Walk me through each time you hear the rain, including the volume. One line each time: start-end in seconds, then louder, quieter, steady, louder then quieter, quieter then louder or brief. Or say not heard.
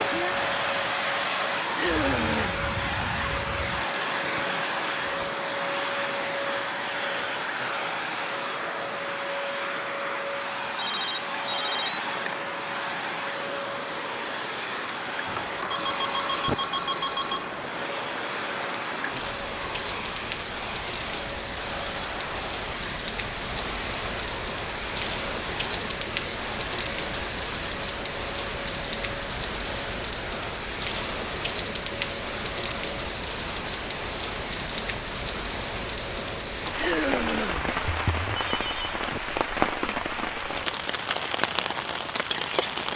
0.0-42.9 louder.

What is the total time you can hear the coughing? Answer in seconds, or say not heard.
2 s.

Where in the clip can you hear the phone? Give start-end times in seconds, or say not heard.
10.8-12.0, 15.2-17.6, 37.9-39.0.